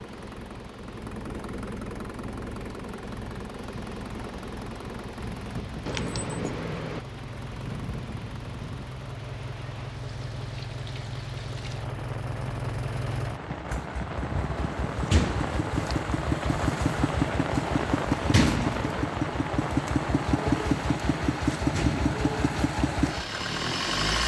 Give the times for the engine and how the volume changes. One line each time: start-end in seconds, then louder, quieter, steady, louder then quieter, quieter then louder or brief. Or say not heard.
0.0-24.2 louder.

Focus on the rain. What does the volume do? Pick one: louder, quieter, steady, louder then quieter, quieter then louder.
louder.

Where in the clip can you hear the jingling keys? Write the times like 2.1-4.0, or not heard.
5.8-7.0.